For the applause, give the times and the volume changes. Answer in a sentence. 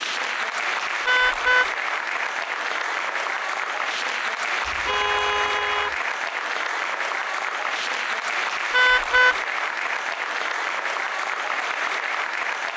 The applause can be heard from 0.0 to 12.7 s, at a steady volume.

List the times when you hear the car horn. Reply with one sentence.
The car horn can be heard from 1.1 to 1.7 s, from 4.7 to 6.0 s and from 8.7 to 9.3 s.